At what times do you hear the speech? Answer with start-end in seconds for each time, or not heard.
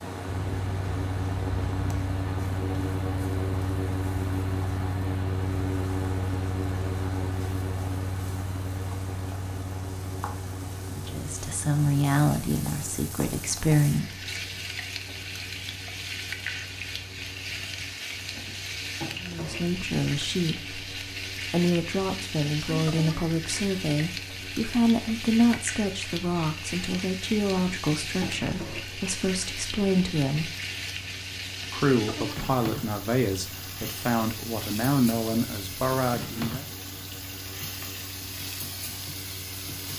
10.9-14.2, 19.2-30.5, 31.7-36.6.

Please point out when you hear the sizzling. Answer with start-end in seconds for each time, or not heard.
0.0-39.9.